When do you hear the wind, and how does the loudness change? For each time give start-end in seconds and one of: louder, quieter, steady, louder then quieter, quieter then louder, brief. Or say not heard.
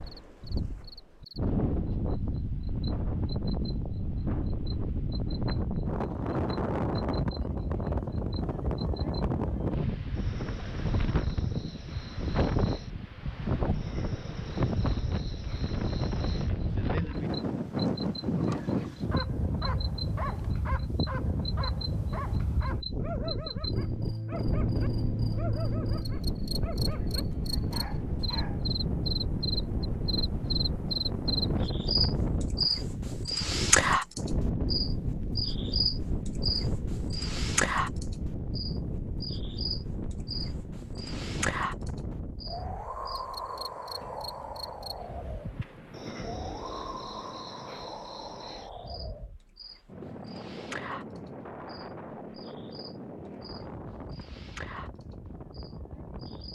0.0-56.5 quieter.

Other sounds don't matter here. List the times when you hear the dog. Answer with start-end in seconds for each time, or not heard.
18.4-28.8.